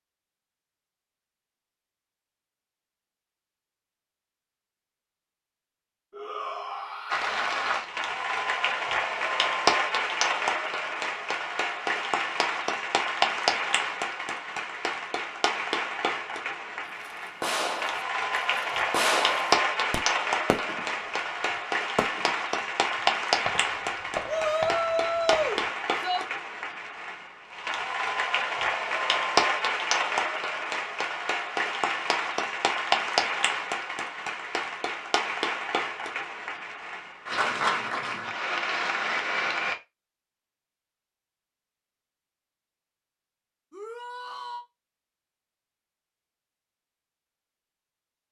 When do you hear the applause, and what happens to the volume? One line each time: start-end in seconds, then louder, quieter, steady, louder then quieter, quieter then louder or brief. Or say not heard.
7.1-39.8 steady.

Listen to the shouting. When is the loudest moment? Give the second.
25 s.